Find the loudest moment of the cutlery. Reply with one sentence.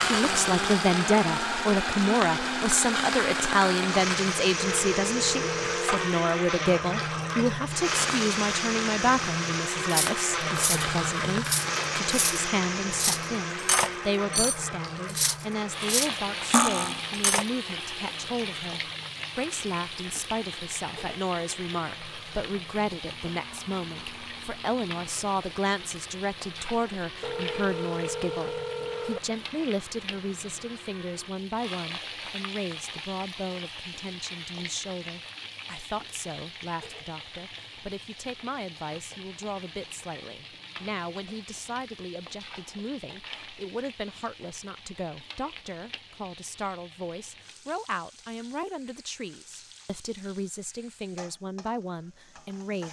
The volume of the cutlery peaks at 17 seconds.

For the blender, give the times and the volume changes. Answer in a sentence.
The blender can be heard from 0.0 to 31.3 s, getting quieter.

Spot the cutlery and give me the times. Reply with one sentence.
The cutlery can be heard from 9.8 to 17.4 s.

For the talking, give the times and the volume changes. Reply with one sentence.
The talking can be heard from 0.0 to 52.8 s, getting quieter.